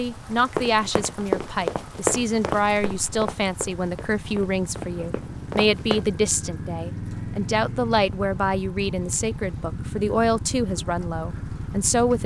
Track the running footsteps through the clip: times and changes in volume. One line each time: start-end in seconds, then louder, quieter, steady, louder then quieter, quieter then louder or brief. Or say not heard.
0.6-6.0 quieter then louder.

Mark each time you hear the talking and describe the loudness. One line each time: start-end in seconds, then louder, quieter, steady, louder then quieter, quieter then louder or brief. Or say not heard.
0.0-12.2 steady.